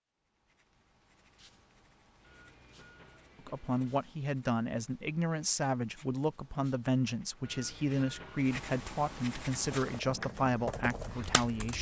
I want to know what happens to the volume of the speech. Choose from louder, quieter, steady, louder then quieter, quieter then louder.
steady.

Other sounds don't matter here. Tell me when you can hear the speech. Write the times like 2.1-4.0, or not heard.
3.5-11.7.